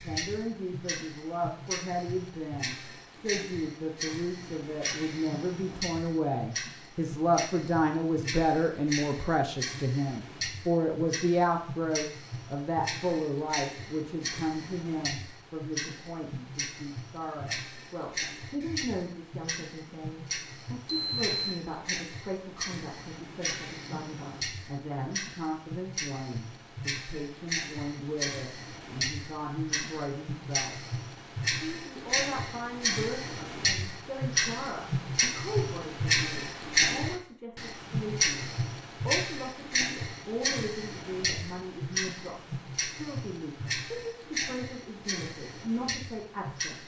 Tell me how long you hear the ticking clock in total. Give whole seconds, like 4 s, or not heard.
47 s.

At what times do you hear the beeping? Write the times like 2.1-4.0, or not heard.
20.9-21.6.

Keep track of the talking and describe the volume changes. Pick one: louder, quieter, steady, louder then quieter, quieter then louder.
quieter.